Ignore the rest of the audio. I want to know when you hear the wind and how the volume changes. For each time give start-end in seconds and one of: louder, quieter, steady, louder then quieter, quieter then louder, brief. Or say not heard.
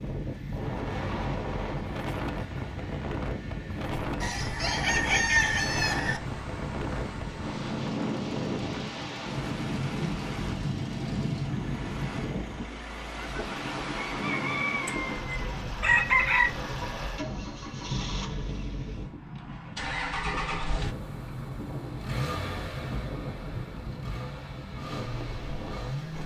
0.0-26.2 quieter.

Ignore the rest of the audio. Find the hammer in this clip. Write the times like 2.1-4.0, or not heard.
not heard.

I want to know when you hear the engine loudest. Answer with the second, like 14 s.
20 s.